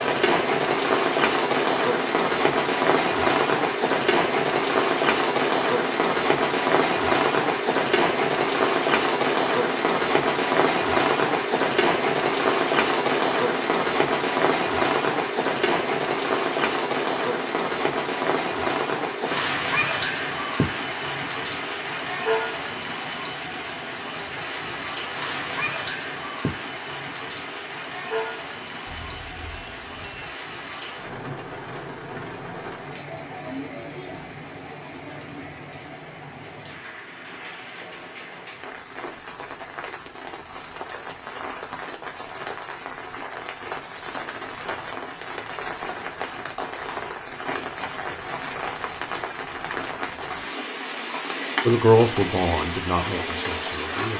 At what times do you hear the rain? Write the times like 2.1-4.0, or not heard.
0.0-54.1.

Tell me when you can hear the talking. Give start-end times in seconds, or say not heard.
51.6-54.1.